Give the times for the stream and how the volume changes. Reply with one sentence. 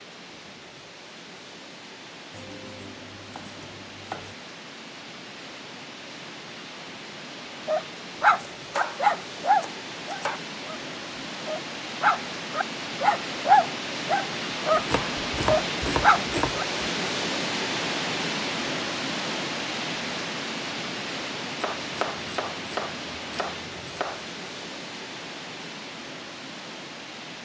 The stream can be heard from 0.0 to 27.4 s, getting louder then quieter.